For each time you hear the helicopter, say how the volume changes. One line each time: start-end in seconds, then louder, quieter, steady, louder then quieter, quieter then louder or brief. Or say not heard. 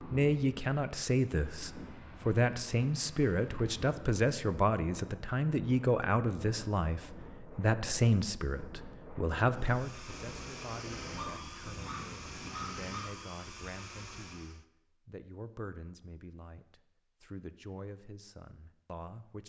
9.5-14.7 steady.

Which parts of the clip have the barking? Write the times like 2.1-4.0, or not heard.
11.2-13.1.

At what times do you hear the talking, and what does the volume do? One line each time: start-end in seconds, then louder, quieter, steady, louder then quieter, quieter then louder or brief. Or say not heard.
0.0-19.4 quieter.